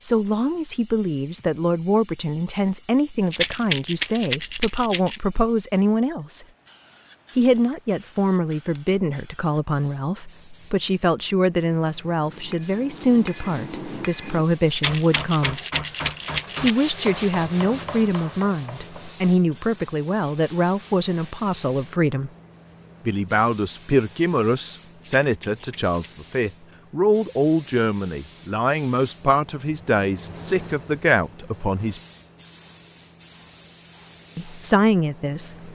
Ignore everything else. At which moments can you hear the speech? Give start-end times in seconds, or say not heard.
0.0-6.5, 7.3-15.6, 16.6-22.3, 23.1-32.0, 34.4-35.7.